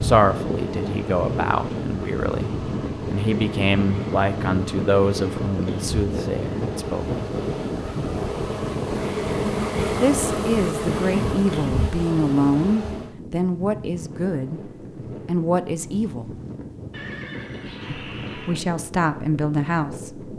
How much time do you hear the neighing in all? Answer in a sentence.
You can hear the neighing for 2 seconds altogether.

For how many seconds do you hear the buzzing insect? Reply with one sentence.
You can hear the buzzing insect for 13 seconds altogether.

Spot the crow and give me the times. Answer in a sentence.
You can't hear the crow here.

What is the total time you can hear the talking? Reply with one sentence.
You can hear the talking for 16 seconds altogether.